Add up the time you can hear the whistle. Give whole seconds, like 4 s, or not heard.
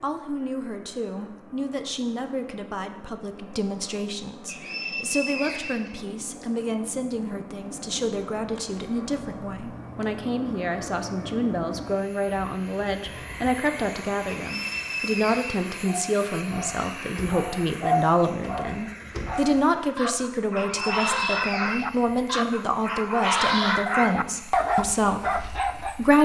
5 s.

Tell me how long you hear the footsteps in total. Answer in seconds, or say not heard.
not heard.